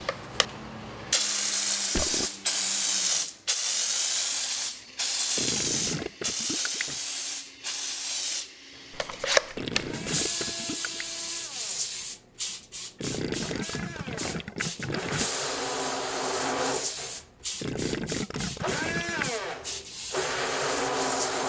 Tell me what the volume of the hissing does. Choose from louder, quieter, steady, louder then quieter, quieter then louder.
quieter.